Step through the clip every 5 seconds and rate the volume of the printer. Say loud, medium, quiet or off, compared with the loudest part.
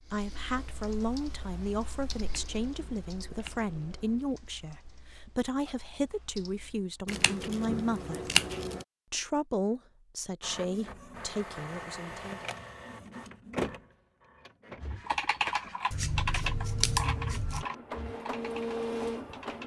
off, off, loud, loud.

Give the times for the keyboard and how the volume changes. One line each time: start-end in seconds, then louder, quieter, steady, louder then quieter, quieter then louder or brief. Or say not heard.
0.1-7.0 quieter then louder
14.8-19.6 quieter.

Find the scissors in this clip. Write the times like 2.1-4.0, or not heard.
2.2-4.3, 7.0-8.8, 15.9-17.6.